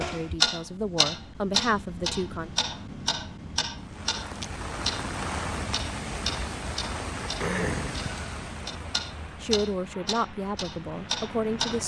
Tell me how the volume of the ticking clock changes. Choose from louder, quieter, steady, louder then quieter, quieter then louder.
quieter.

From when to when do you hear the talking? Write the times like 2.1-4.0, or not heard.
0.0-2.5, 9.4-11.8.